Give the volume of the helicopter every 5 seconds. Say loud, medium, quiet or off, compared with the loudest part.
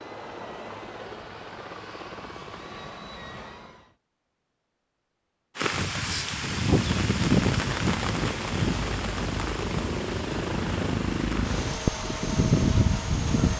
quiet, medium, loud.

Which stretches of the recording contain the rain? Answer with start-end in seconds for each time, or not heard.
5.5-13.5.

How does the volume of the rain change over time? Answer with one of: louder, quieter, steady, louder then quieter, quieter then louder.
quieter.